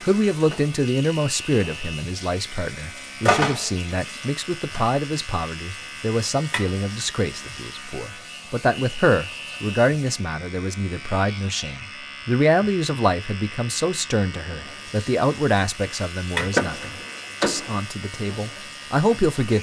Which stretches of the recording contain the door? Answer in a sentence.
You can hear the door from 16.4 to 17.8 s.